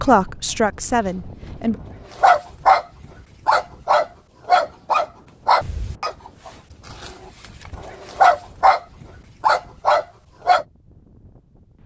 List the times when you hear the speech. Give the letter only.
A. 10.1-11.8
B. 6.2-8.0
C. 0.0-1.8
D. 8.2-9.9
C.